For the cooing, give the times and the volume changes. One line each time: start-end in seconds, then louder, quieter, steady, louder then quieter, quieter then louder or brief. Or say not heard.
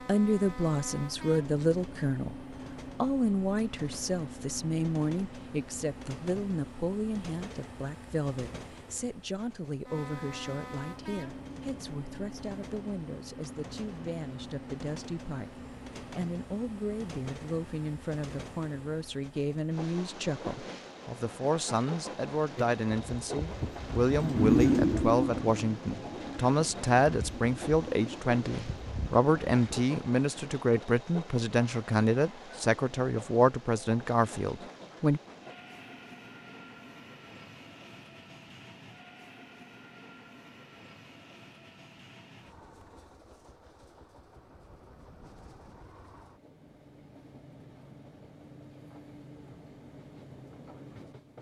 22.6-29.9 louder then quieter.